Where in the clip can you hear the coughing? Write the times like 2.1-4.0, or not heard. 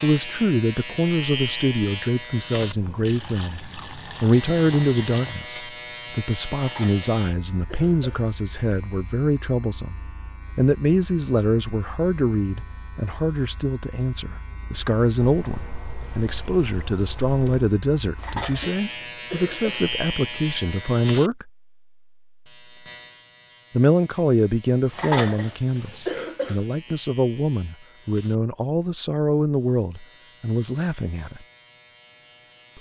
6.5-8.2, 18.1-19.9, 24.9-26.6.